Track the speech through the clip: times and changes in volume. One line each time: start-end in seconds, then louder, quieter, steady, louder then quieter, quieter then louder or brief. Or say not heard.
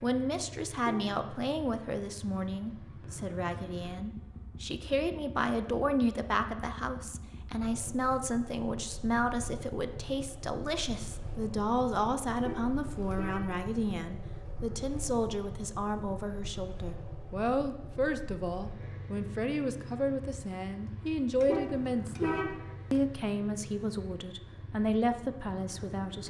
0.0-26.2 steady.